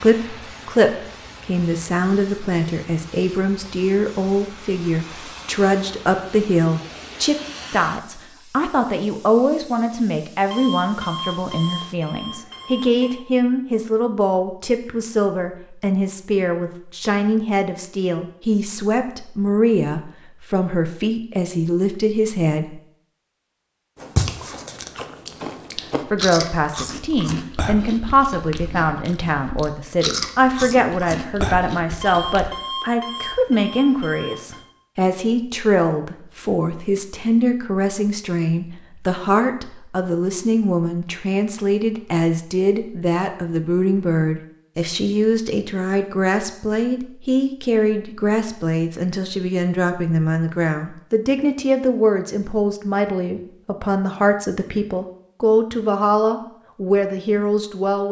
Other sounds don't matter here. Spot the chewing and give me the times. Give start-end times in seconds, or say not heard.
23.9-32.5.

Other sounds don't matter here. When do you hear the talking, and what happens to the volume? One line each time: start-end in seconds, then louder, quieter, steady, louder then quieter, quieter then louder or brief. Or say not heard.
0.0-22.8 steady
26.1-58.0 steady.